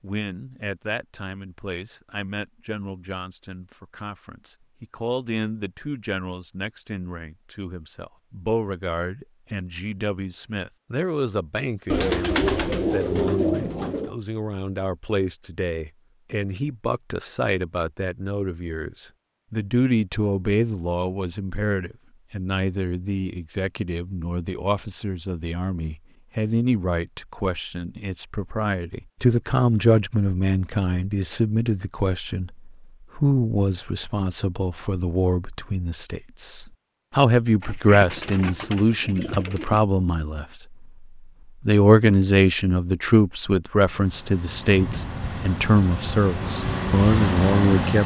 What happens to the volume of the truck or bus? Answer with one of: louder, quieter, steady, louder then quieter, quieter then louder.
louder.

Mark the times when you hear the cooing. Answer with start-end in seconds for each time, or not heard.
11.8-14.2, 37.6-39.9.